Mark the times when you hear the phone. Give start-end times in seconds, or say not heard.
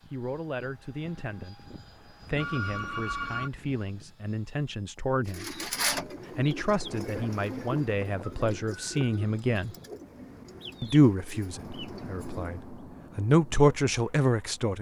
2.4-3.5.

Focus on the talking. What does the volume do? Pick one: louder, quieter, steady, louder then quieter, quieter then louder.
louder.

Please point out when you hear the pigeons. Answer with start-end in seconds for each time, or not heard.
5.2-12.7.